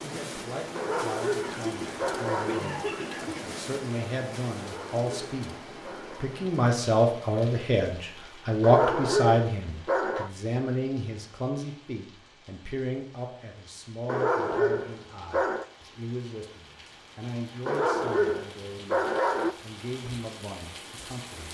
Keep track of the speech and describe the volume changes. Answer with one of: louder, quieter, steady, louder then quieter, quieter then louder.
louder then quieter.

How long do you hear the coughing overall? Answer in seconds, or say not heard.
2 s.